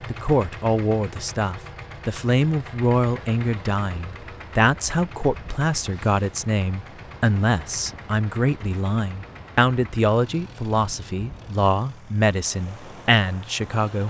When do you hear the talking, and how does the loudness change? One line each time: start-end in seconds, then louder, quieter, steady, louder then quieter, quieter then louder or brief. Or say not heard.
0.1-14.0 steady.